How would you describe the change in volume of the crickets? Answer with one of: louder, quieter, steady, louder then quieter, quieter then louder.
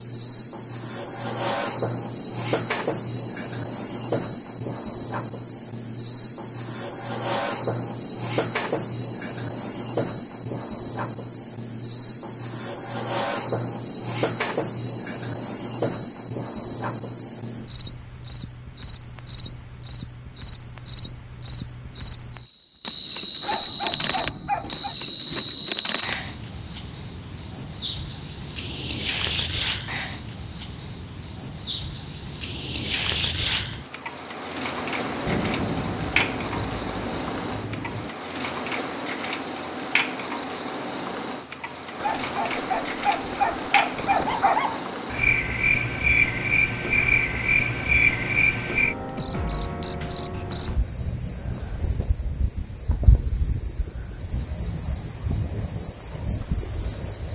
steady.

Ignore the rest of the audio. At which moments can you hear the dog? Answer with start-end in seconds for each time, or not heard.
23.4-24.9, 42.0-44.9.